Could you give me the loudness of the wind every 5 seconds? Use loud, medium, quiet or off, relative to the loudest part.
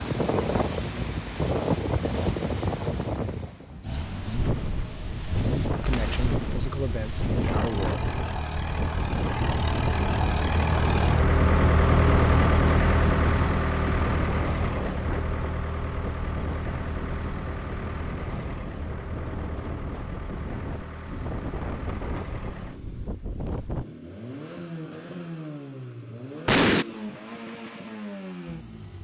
loud, loud, loud, medium, medium, off.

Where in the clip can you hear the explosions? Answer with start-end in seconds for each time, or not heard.
5.8-6.6, 26.4-26.9.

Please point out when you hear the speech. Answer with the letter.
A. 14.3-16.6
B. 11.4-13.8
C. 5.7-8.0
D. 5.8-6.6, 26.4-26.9
C.